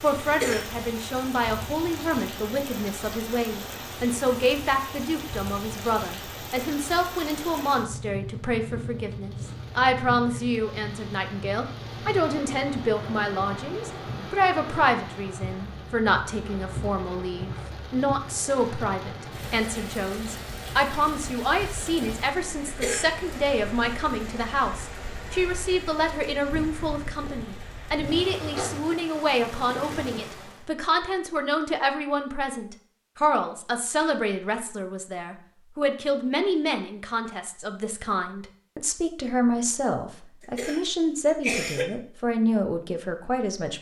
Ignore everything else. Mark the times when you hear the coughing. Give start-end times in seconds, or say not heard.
0.2-0.8, 22.6-23.1, 40.4-41.9.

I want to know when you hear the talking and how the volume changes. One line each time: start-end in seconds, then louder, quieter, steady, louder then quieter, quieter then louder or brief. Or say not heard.
0.0-43.7 steady.